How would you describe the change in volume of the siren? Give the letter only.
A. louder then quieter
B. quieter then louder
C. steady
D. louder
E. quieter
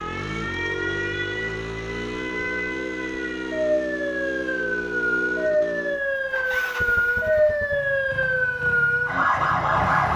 D.